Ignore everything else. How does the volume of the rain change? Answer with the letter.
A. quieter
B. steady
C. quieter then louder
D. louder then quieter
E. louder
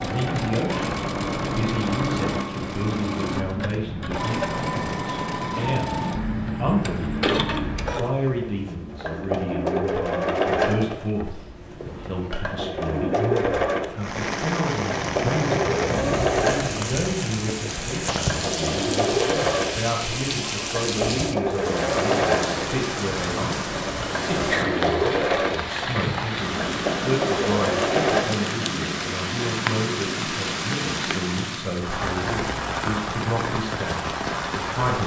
B.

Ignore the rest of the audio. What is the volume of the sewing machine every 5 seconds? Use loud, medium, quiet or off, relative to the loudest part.
loud, loud, loud, loud, loud, loud, off.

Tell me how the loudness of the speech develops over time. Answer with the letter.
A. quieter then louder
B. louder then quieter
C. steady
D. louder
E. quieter
C.